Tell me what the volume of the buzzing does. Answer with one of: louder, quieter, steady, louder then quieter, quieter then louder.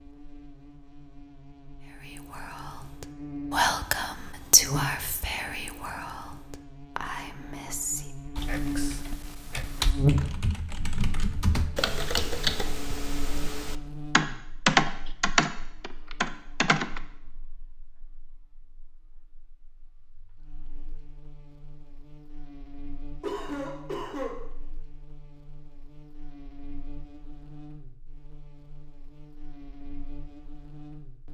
louder then quieter.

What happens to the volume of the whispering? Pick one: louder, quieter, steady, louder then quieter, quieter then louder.
quieter.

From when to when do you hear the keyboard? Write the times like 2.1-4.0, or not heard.
8.3-17.0.